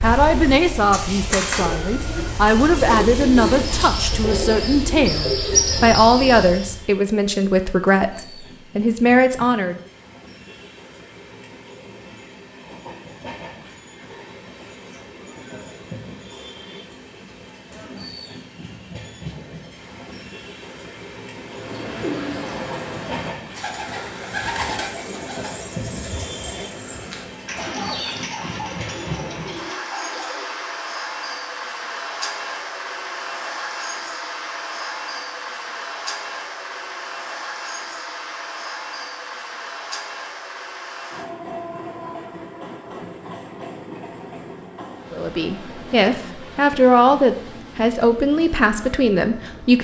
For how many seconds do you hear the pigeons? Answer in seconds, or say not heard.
16 s.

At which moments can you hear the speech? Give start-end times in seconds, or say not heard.
0.0-9.8, 45.1-49.8.